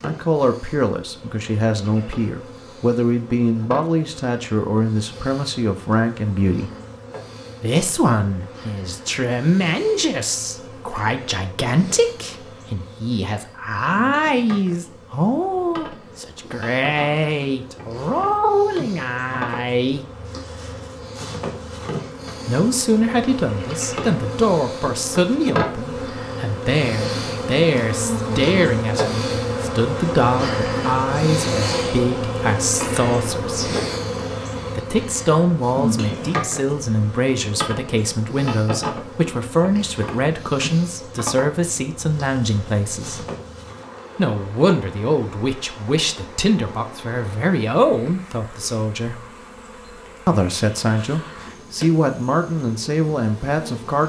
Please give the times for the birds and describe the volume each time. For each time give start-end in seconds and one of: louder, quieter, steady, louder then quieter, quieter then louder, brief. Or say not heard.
not heard.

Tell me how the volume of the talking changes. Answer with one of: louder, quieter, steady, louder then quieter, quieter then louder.
steady.